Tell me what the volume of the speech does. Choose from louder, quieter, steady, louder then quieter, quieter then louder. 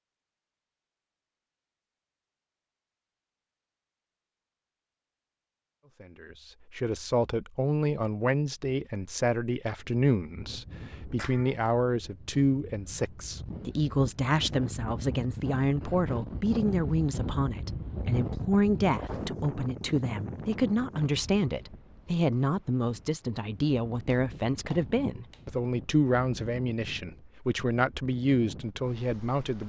steady.